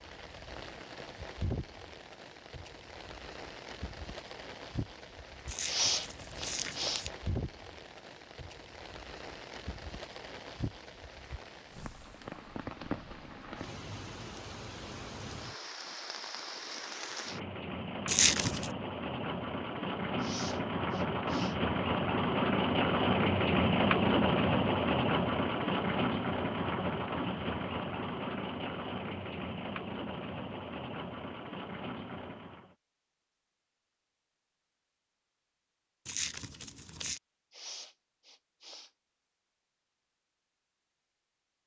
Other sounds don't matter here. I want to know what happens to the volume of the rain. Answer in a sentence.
The volume of the rain goes up, then down.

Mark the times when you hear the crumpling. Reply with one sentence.
You can hear the crumpling from 5.5 to 7.1 s, from 18.1 to 18.7 s and from 36.0 to 37.2 s.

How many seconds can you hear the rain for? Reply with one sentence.
The rain can be heard for 33 seconds in total.